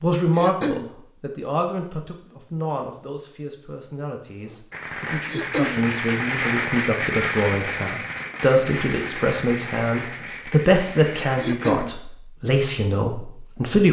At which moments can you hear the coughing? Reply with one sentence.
You can hear the coughing from 0.3 to 0.9 s, from 5.2 to 5.8 s and from 11.3 to 11.9 s.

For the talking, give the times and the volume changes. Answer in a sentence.
You can hear the talking from 0.0 to 13.8 s, getting quieter then louder.